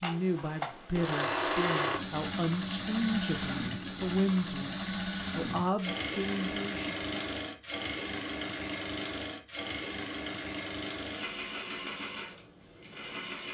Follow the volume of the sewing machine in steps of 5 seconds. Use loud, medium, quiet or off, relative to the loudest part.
loud, loud, medium.